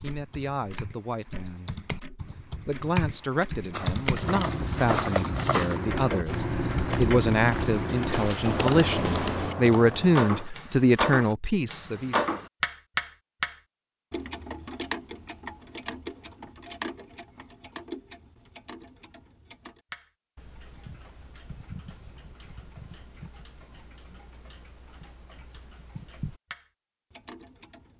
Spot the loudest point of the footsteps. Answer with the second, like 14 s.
5 s.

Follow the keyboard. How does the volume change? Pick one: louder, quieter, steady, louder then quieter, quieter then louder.
louder.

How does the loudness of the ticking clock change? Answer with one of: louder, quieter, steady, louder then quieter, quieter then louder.
louder then quieter.